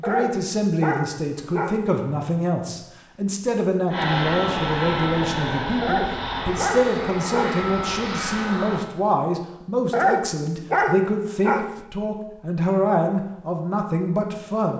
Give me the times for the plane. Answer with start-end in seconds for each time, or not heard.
3.9-8.8.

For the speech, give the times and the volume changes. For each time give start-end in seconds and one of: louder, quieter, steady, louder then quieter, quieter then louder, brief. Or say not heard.
0.0-14.7 steady.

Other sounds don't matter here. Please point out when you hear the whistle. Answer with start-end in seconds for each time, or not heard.
not heard.